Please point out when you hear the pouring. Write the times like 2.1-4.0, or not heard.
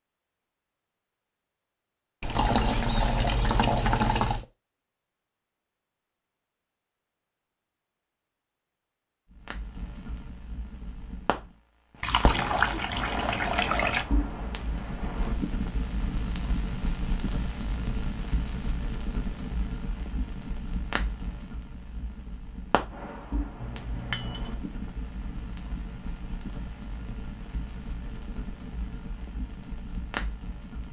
2.2-4.5, 12.0-14.1, 23.6-24.6.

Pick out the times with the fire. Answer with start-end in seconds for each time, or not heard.
9.3-30.8.